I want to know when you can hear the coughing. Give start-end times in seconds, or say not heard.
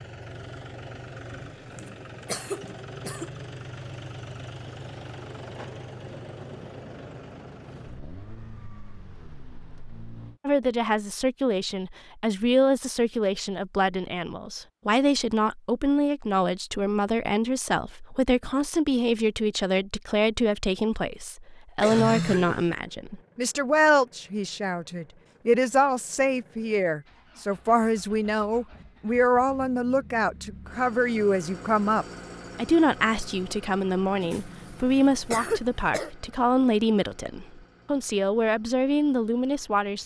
1.7-3.3, 21.8-22.8, 34.2-36.1.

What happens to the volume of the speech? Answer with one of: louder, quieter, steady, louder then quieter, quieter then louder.
steady.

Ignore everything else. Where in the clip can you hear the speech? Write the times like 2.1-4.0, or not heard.
10.4-40.0.